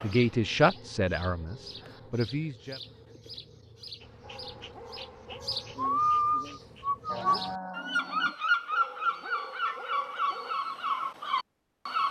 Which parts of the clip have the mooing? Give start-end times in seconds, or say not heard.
7.0-8.6.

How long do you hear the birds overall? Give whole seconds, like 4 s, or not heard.
12 s.